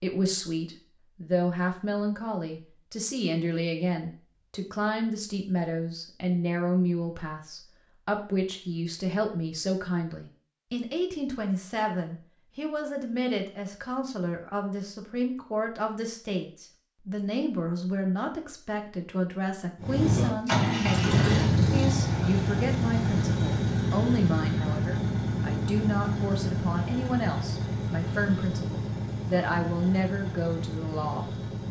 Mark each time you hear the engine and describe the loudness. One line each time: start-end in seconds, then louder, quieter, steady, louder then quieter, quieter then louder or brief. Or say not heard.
19.8-31.6 quieter.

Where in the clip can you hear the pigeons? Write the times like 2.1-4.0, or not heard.
not heard.